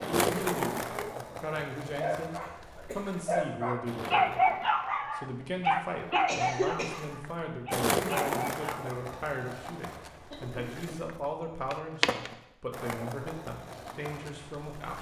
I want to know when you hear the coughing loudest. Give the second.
7 s.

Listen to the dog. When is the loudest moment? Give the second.
4 s.